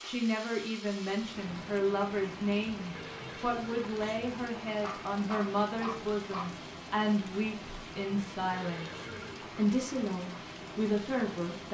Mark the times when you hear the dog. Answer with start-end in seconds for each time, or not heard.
4.8-6.5.